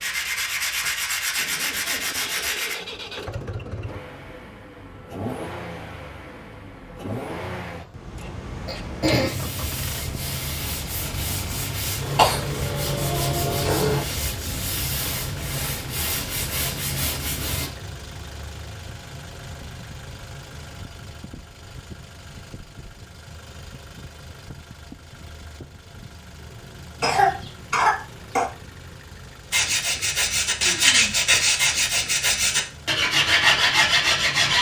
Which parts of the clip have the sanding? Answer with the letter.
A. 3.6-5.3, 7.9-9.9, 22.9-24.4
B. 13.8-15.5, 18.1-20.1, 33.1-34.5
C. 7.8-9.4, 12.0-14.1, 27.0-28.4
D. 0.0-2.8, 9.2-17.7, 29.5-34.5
D.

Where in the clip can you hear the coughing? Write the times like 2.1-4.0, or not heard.
7.8-9.4, 12.0-14.1, 27.0-28.4.